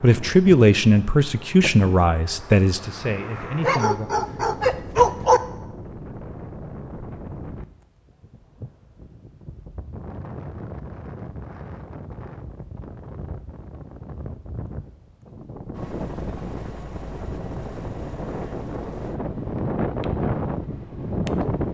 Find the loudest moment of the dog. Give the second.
5 s.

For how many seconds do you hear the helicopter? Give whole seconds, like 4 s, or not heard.
6 s.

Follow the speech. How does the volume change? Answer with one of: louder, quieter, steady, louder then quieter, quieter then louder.
quieter.